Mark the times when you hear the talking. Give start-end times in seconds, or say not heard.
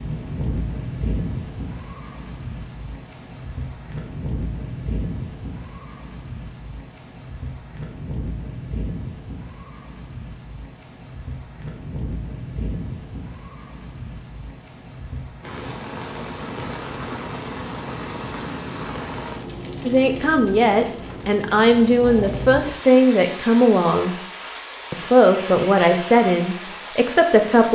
19.9-24.1, 24.9-27.7.